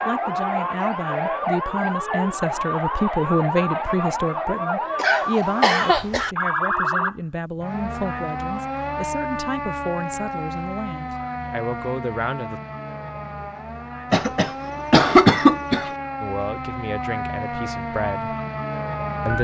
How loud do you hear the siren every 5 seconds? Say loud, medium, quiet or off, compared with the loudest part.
loud, loud, medium, loud.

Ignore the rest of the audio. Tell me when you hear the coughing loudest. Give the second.
15 s.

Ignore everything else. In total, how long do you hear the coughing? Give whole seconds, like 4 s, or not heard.
3 s.